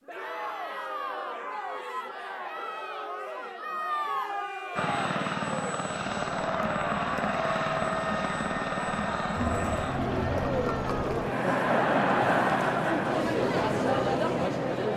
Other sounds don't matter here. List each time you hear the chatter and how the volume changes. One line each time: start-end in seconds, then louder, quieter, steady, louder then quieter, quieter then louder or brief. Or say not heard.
0.1-14.9 louder.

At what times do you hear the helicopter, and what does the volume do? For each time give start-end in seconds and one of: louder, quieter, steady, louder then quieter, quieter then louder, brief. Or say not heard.
4.8-14.9 quieter.